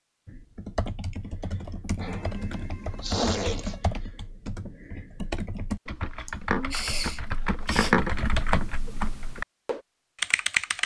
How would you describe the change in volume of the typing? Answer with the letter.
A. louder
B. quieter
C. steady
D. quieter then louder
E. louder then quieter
A.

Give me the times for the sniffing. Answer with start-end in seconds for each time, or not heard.
1.9-3.8, 6.2-8.0.